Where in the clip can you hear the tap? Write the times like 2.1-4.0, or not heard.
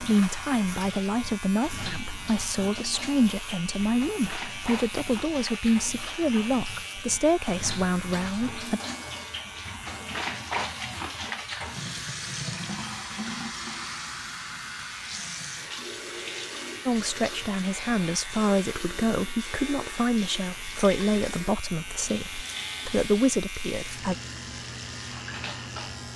0.0-26.1.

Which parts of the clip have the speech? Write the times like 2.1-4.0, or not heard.
0.0-8.8, 16.9-24.1.